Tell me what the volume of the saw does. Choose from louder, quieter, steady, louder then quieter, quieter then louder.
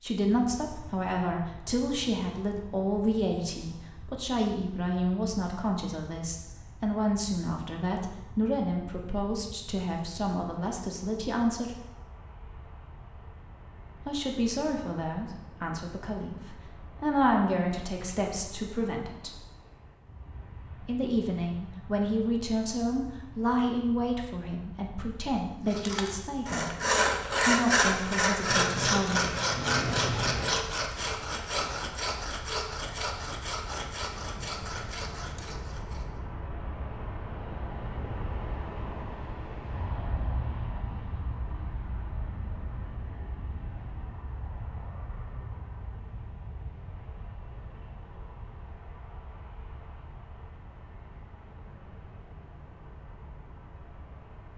quieter.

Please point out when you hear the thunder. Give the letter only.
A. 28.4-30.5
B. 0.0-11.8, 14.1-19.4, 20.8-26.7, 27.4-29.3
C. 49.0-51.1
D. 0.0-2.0
A.